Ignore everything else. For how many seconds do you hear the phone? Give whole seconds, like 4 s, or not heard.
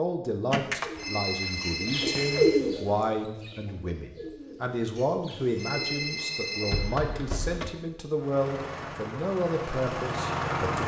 3 s.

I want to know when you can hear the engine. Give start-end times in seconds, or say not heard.
8.2-10.8.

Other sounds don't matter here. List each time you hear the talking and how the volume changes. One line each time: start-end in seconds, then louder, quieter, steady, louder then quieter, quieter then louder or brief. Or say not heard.
0.0-10.8 steady.